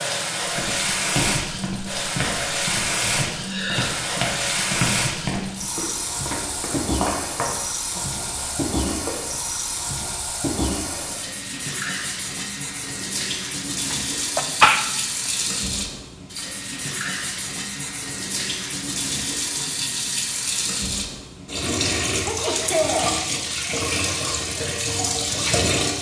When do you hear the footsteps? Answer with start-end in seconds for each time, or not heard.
0.4-9.1.